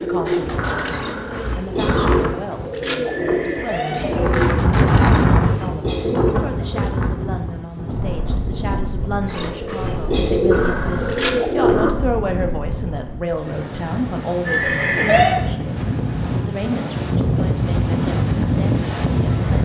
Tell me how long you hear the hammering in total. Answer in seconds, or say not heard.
not heard.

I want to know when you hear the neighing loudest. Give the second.
15 s.